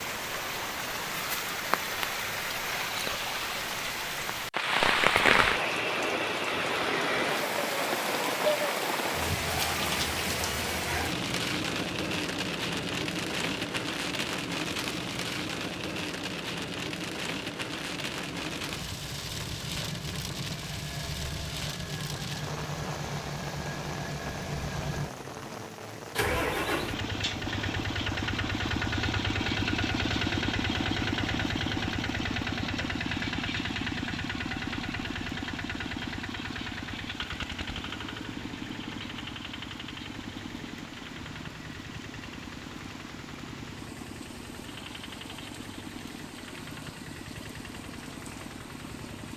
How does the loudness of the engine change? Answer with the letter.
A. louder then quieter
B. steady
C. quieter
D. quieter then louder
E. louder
A.